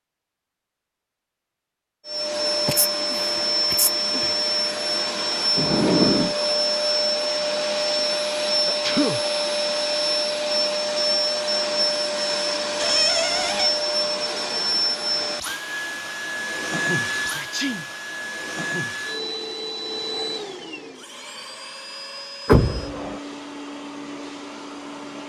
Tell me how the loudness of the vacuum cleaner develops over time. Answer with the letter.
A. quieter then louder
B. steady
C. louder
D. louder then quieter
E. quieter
E.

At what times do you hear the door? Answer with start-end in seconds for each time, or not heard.
5.5-6.3, 12.8-13.8, 22.4-23.2.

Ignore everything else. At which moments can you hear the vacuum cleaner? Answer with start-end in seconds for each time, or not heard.
2.0-25.2.